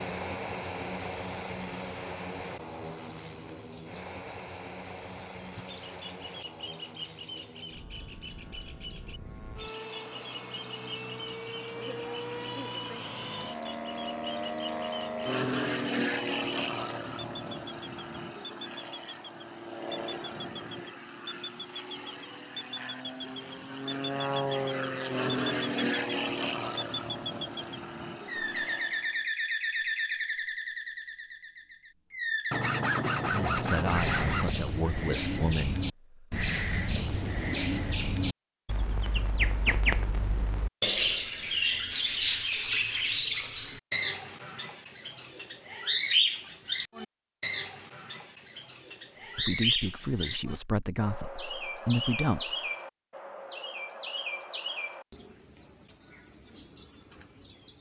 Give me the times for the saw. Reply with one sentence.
You can hear the saw from 32.5 to 34.5 s.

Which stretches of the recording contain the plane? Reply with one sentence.
The plane can be heard from 0.0 to 29.1 s.